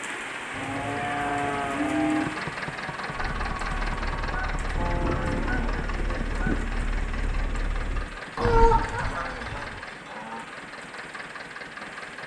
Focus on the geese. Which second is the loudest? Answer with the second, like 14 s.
9 s.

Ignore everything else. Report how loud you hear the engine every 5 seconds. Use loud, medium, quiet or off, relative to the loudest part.
loud, loud, medium.